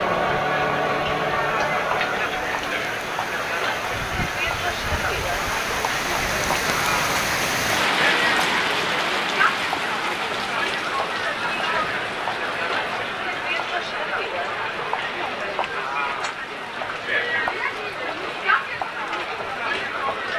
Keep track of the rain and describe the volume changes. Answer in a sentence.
The volume of the rain goes up, then down.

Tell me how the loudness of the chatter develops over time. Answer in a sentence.
The volume of the chatter stays about the same.